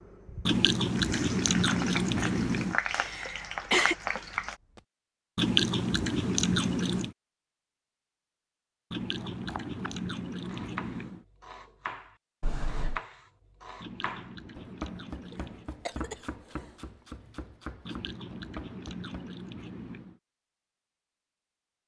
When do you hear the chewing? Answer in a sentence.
The chewing can be heard from 0.5 to 2.8 s, from 5.3 to 7.2 s, from 8.9 to 11.2 s, from 13.8 to 15.7 s and from 17.9 to 20.2 s.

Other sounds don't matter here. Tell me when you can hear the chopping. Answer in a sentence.
You can hear the chopping from 9.3 to 19.3 s.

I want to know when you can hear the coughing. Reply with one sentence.
You can hear the coughing from 2.9 to 4.0 s, from 12.4 to 13.0 s and from 15.3 to 16.6 s.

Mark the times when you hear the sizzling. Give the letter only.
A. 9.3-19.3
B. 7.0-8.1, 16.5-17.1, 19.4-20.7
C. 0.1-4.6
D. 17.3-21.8
C.